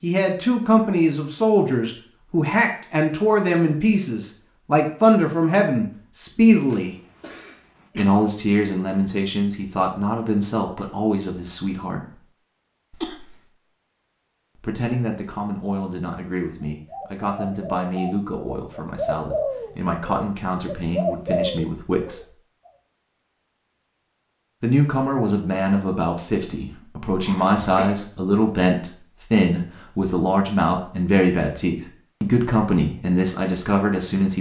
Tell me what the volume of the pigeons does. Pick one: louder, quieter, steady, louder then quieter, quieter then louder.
louder.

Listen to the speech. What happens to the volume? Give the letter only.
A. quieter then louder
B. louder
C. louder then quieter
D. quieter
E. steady
A.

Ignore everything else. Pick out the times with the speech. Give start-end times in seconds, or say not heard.
0.0-7.0, 8.0-12.2, 14.6-22.3, 24.6-34.3.